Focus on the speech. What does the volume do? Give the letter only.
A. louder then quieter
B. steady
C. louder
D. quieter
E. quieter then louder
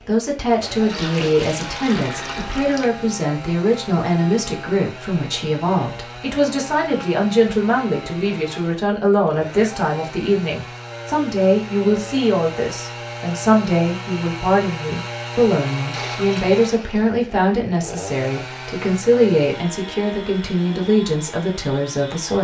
B.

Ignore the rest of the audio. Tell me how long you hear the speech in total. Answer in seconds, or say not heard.
22 s.